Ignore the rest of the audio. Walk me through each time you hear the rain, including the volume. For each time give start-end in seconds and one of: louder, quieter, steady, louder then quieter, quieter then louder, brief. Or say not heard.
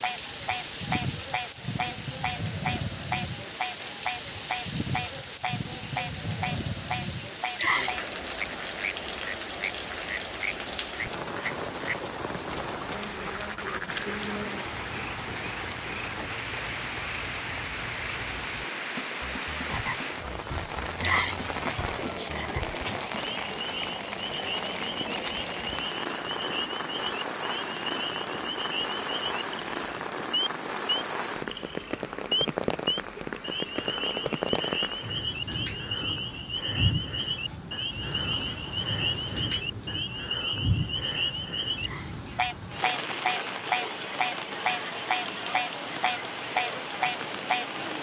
0.0-47.9 steady.